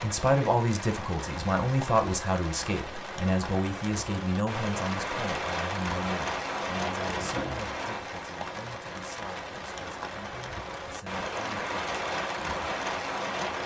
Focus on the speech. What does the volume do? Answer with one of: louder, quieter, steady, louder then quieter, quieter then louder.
quieter.